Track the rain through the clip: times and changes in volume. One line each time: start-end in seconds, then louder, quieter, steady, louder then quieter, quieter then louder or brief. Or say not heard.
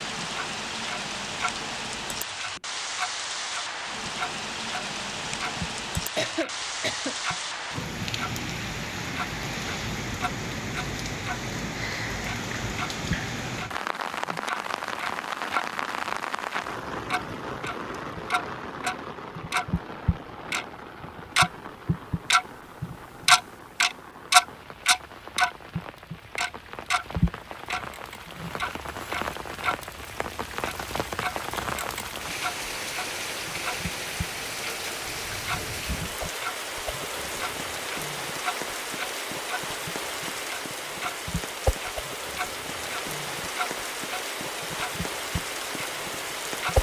0.0-46.7 quieter then louder.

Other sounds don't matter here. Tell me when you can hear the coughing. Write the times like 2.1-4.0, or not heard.
6.2-7.2.